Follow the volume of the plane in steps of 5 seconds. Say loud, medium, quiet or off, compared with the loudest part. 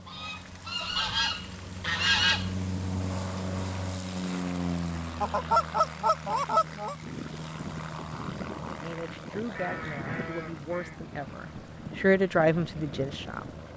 loud, loud, medium.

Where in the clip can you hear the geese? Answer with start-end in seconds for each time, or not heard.
0.1-2.5, 5.2-7.0, 9.6-11.0.